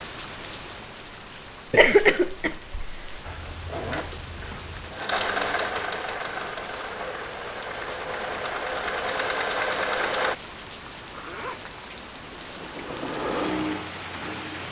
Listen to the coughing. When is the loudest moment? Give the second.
2 s.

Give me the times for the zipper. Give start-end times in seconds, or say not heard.
3.2-4.9, 11.0-11.8.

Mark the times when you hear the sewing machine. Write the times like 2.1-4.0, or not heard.
3.8-10.3, 11.9-14.5.